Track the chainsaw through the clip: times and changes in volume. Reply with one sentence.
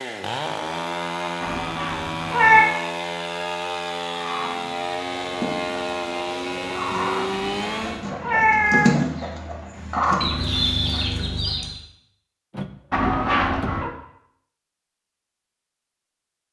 You can hear the chainsaw from 0.0 to 8.1 s, at a steady volume.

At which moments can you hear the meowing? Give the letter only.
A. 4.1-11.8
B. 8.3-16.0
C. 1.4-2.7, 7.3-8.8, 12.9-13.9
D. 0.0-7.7
C.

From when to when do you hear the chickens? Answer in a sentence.
You can hear the chickens from 4.1 to 11.8 s.